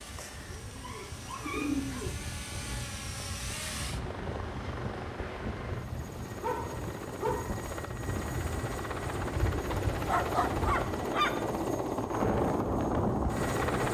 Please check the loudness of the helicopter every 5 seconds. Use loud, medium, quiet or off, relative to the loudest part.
medium, medium, loud.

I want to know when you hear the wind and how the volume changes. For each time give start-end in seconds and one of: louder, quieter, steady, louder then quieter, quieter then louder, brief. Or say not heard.
0.0-13.9 louder.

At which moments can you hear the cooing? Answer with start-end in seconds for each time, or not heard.
0.0-2.1.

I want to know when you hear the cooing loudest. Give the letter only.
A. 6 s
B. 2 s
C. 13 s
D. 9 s
B.